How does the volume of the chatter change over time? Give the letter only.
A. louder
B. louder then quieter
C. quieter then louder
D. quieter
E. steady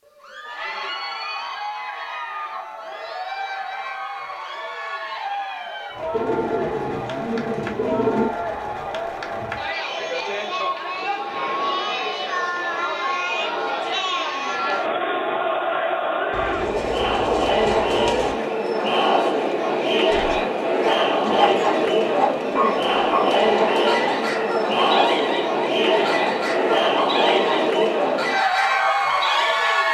A.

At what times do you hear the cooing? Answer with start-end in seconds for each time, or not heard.
6.1-8.3, 16.3-18.4, 21.2-23.8.